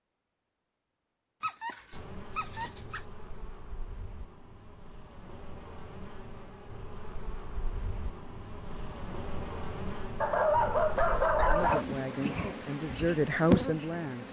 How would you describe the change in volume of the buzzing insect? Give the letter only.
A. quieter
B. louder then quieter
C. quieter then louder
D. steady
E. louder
E.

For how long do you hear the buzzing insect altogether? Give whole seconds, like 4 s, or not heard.
12 s.